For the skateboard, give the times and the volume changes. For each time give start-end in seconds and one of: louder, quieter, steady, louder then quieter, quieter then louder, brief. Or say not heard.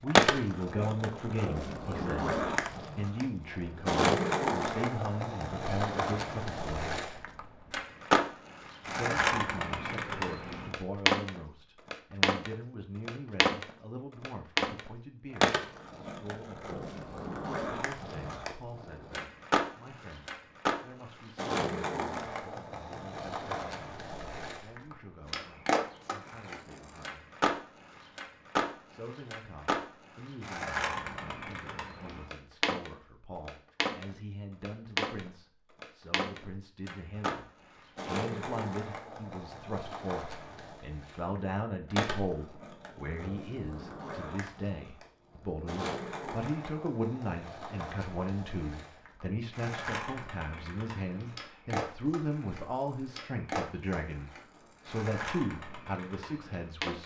0.1-57.0 quieter.